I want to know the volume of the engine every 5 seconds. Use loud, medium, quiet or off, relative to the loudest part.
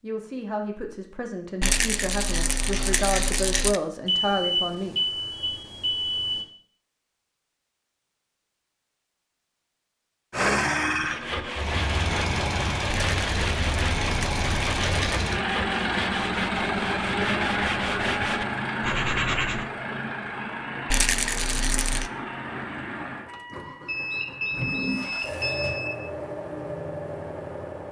off, off, loud, loud, medium, medium.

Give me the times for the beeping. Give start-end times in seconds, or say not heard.
4.0-6.4, 23.9-25.9.